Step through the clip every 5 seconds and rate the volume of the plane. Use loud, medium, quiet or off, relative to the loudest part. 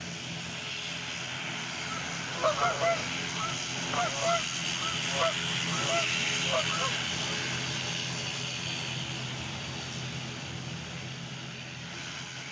loud, loud, medium.